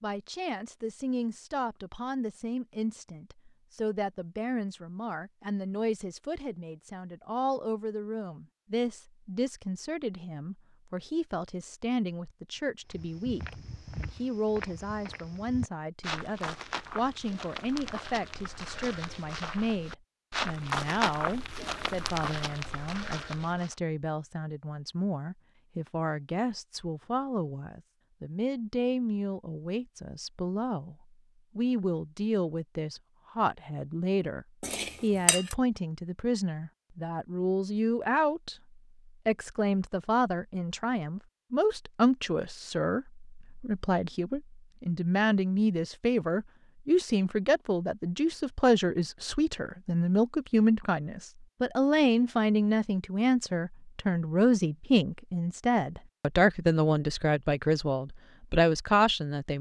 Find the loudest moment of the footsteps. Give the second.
21 s.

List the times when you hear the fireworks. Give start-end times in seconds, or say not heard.
not heard.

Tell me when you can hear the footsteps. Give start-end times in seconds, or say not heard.
12.9-23.8.